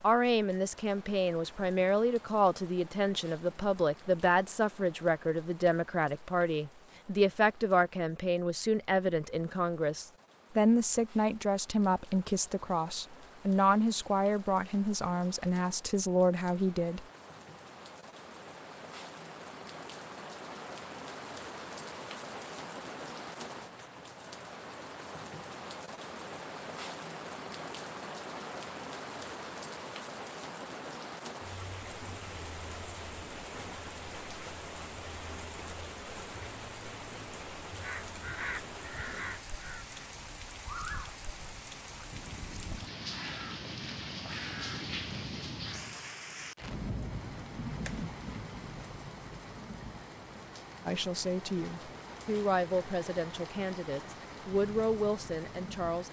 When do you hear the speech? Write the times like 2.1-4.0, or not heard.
0.0-17.1, 50.9-56.0.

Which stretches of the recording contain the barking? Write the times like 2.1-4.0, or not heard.
not heard.